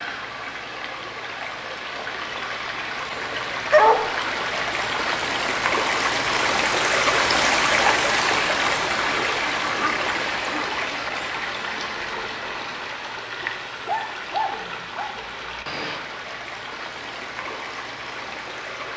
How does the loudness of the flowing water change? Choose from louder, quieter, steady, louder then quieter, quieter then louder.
louder then quieter.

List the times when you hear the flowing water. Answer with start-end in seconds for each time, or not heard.
0.0-18.9.